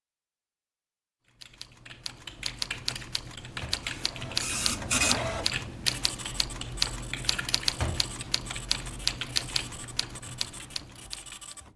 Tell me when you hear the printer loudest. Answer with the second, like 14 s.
5 s.